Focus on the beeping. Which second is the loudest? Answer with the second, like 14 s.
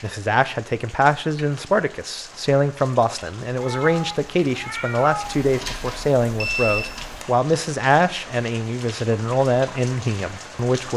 7 s.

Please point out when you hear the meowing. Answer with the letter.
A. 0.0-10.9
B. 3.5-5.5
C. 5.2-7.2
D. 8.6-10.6
B.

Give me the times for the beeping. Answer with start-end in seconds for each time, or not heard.
5.2-7.2.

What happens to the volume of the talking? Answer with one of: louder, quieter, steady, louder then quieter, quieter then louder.
steady.